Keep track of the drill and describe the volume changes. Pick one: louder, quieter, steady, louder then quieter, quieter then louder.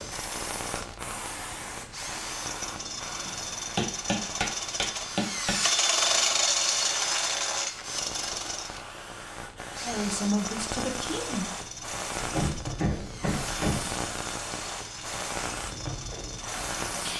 louder then quieter.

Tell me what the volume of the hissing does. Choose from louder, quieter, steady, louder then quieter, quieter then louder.
quieter then louder.